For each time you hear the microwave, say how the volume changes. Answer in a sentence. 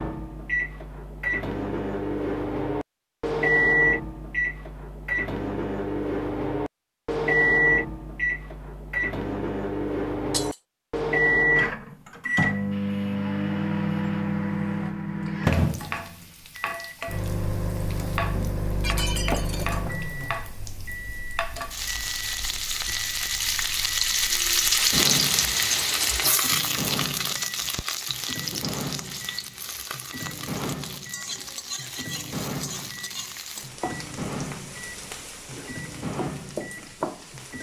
The microwave can be heard from 0.0 to 37.5 s, getting quieter.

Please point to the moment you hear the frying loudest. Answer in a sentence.
The loudest moment of the frying is at 25 seconds.